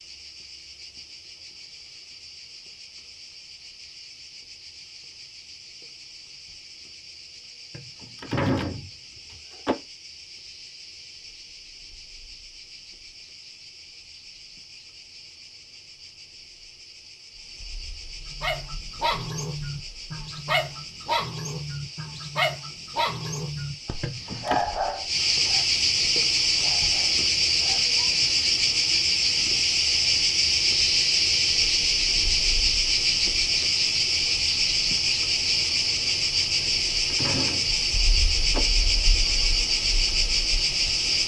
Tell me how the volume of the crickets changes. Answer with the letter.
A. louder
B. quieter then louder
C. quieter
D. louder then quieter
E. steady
A.